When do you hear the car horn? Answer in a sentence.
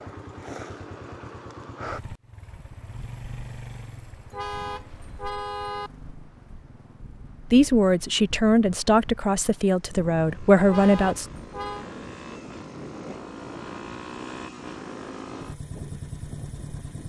The car horn can be heard from 4.3 to 5.9 s and from 10.7 to 11.8 s.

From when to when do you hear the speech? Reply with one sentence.
The speech can be heard from 7.5 to 11.2 s.